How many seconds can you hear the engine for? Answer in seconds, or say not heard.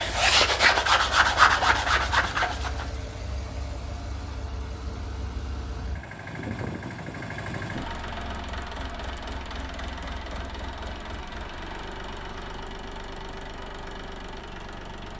15 s.